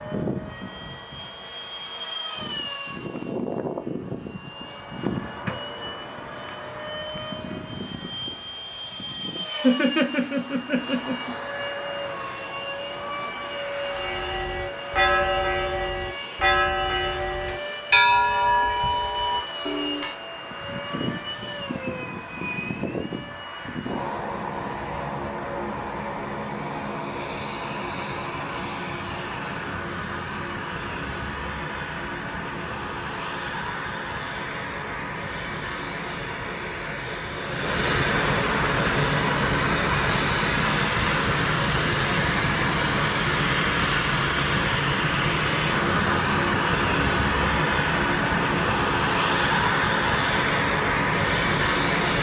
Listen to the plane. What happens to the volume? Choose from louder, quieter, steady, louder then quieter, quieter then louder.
louder.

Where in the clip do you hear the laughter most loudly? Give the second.
10 s.